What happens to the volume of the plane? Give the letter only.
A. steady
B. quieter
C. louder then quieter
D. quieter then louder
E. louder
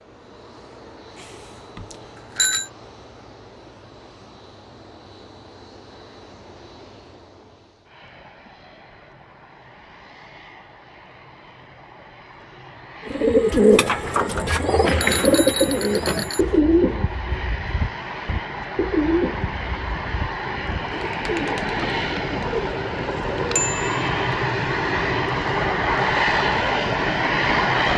E.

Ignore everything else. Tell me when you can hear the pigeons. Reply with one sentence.
The pigeons can be heard from 13.1 to 23.8 s.